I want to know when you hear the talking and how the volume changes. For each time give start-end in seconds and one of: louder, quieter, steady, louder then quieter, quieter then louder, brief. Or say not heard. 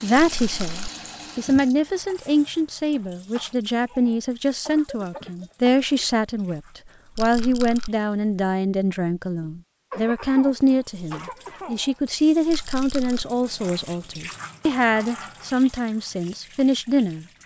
0.0-17.2 steady.